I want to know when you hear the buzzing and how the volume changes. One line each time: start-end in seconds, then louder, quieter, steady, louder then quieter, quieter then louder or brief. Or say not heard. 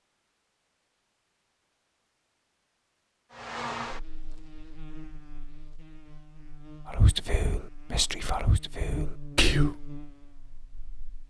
3.3-11.2 quieter then louder.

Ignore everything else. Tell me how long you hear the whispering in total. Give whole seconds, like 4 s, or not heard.
3 s.